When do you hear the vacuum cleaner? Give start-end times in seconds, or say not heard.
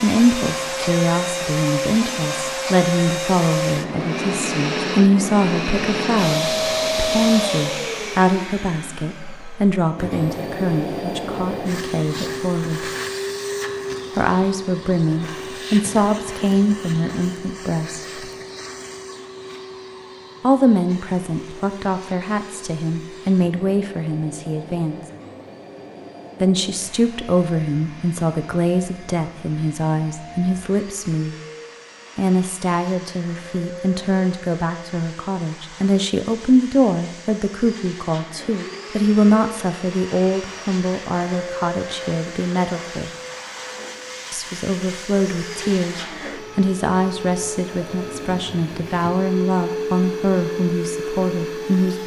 0.0-52.0.